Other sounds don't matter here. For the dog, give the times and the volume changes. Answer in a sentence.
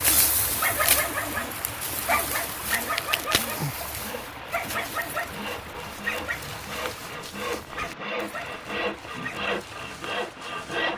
The dog can be heard from 0.0 to 10.9 s, getting quieter.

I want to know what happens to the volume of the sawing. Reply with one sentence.
The volume of the sawing goes up.